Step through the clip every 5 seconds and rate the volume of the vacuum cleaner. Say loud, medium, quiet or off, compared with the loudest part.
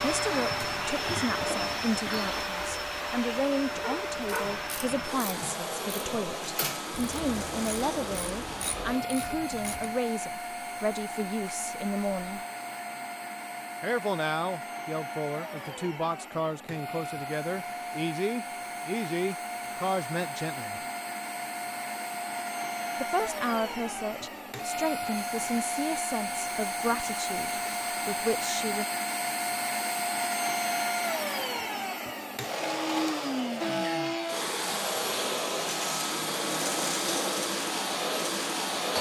loud, medium, medium, medium, medium, loud, loud, loud.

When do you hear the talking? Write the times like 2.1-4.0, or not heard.
0.0-12.4, 13.8-20.8, 23.0-28.9.